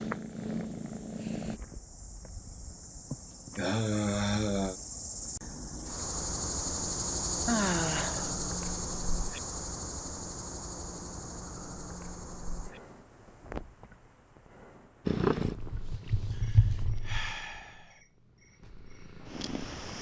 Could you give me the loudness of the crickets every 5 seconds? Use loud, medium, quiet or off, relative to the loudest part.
medium, loud, medium, quiet.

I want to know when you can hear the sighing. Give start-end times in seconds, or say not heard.
3.1-4.8, 7.5-8.3, 16.3-17.9.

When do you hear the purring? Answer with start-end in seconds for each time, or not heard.
0.0-1.6, 15.1-19.9.